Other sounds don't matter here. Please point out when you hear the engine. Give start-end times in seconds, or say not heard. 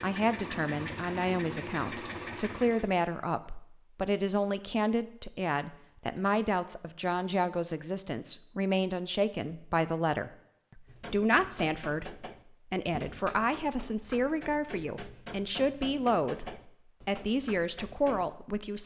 0.0-3.0.